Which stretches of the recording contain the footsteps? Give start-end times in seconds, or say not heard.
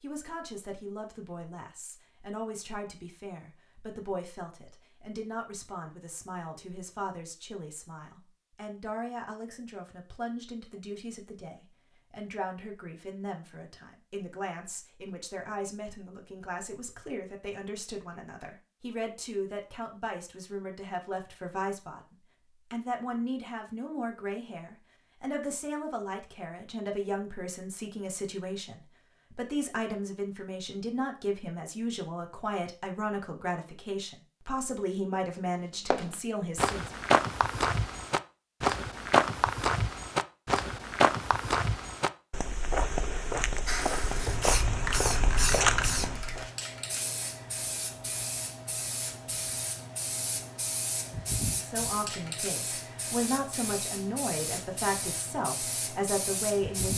35.9-46.5.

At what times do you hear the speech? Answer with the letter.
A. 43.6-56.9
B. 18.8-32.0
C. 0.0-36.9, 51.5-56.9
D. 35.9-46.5
C.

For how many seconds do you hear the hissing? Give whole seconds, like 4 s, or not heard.
13 s.